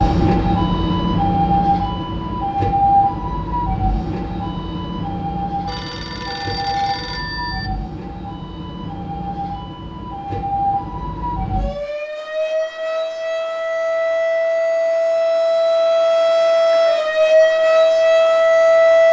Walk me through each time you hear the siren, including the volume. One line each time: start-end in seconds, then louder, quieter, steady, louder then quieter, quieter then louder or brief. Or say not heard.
0.0-19.0 quieter then louder.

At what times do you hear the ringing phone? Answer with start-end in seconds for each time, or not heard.
5.7-7.7.